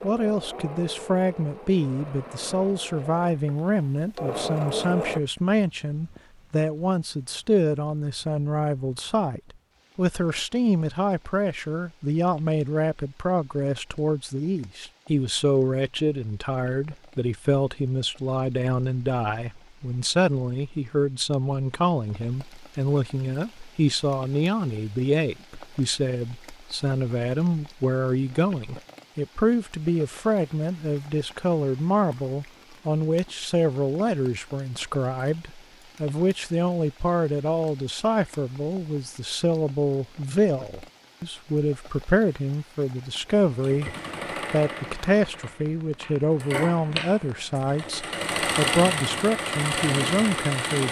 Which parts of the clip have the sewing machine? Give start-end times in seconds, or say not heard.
0.0-5.2, 43.5-50.8.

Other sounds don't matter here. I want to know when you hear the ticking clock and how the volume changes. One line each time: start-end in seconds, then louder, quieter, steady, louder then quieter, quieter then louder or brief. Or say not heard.
not heard.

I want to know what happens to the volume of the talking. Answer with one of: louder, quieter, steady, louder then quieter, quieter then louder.
steady.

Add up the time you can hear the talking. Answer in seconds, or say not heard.
50 s.